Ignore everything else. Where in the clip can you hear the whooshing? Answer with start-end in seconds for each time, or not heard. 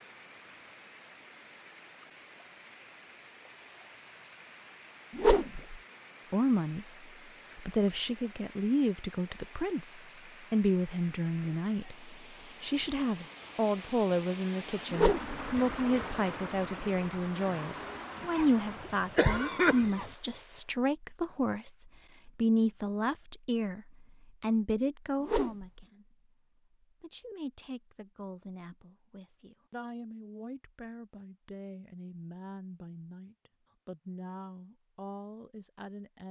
5.2-5.8, 14.9-15.3, 25.2-25.6.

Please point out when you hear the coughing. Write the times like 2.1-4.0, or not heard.
18.4-20.1.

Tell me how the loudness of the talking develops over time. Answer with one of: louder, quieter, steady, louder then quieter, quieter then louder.
quieter.